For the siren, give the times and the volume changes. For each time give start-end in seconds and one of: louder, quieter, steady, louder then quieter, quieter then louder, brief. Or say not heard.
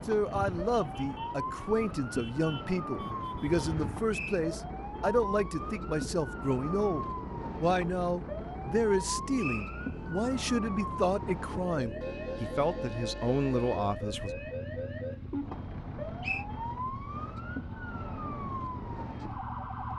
0.0-19.9 steady.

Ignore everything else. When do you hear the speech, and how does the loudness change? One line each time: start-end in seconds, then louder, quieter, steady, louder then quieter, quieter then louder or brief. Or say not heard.
0.1-14.3 steady.